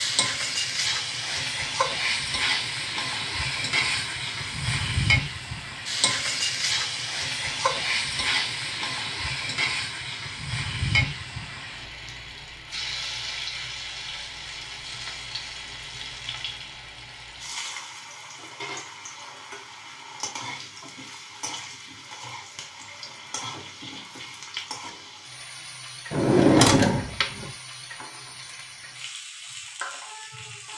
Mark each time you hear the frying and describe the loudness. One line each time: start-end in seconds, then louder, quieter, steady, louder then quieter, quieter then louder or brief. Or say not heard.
0.0-30.7 quieter.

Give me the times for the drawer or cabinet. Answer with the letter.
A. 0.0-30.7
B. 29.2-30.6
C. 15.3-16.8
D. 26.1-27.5
D.